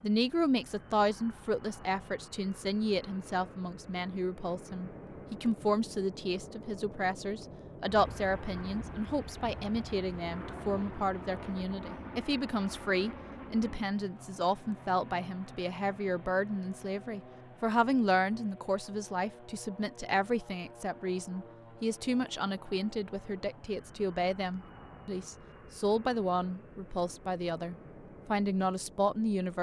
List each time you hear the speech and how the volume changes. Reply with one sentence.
The speech can be heard from 0.0 to 29.5 s, at a steady volume.